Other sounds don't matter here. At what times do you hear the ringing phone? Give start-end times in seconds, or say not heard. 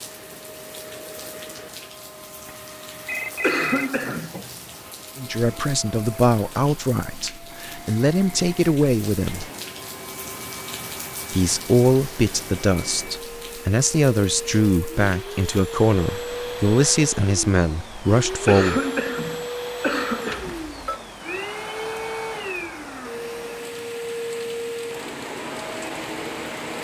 3.0-4.7, 20.3-21.0.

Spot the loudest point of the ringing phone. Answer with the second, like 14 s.
4 s.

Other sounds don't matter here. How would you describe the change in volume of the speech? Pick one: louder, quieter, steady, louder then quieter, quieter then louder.
steady.